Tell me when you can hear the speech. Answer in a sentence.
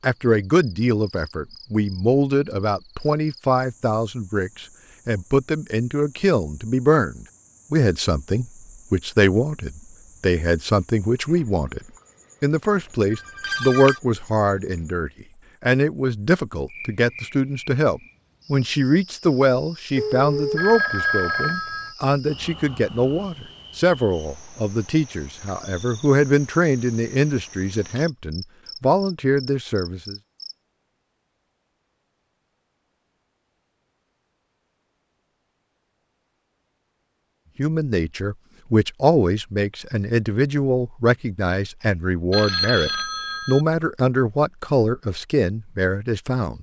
You can hear the speech from 0.0 to 11.8 s, from 12.4 to 30.1 s and from 37.5 to 46.5 s.